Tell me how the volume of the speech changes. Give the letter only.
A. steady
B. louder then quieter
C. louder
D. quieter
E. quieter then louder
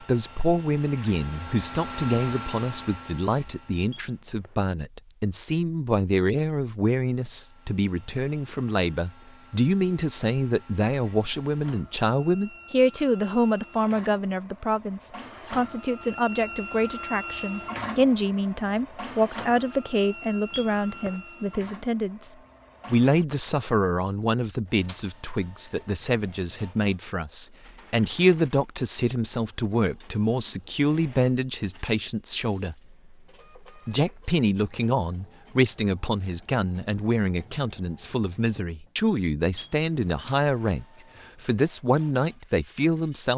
A.